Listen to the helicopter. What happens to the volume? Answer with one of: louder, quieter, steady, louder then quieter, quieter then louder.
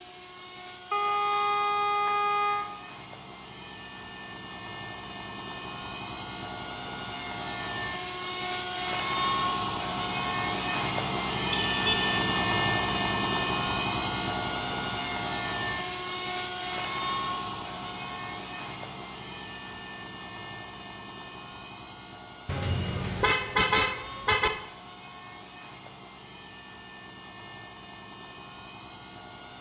louder then quieter.